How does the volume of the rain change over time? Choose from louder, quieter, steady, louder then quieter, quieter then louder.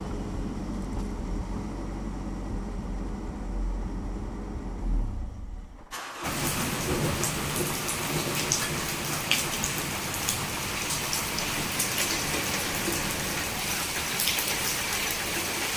steady.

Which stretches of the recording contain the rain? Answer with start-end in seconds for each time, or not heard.
6.2-15.7.